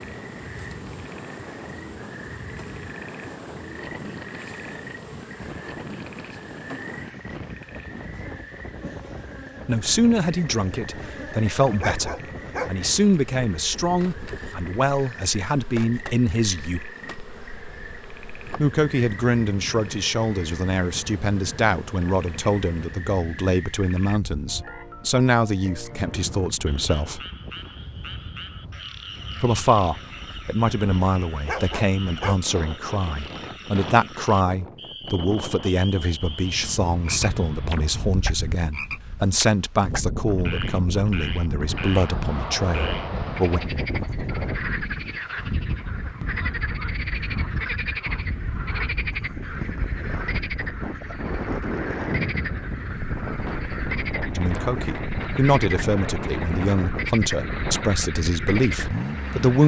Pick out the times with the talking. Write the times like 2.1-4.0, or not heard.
9.7-16.8, 18.6-27.2, 29.4-43.6, 54.4-59.6.